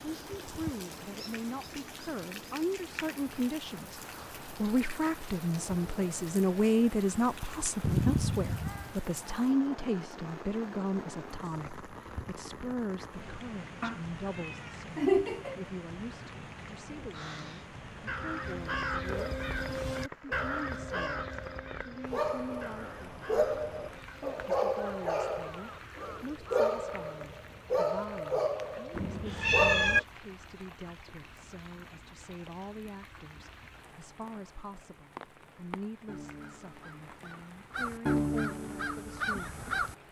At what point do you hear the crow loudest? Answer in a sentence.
The volume of the crow peaks at 38 seconds.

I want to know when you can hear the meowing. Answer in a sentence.
The meowing can be heard from 7.8 to 8.9 s, from 13.8 to 15.6 s and from 28.9 to 30.0 s.